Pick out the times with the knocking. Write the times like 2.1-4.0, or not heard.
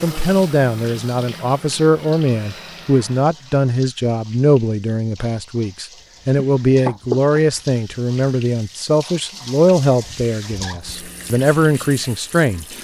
6.3-7.4.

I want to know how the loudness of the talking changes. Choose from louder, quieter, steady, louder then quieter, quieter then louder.
steady.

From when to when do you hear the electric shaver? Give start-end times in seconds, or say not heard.
not heard.